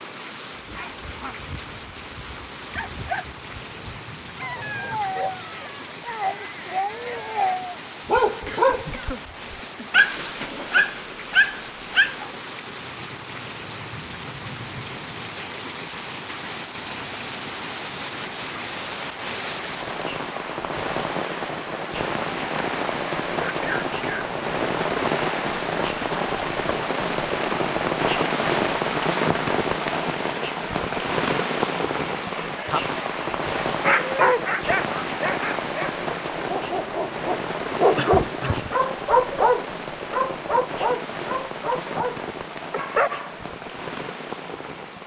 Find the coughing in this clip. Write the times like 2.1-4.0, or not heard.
8.4-9.9, 23.4-24.2, 38.0-38.8.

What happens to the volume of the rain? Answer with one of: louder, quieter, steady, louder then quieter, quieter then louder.
louder then quieter.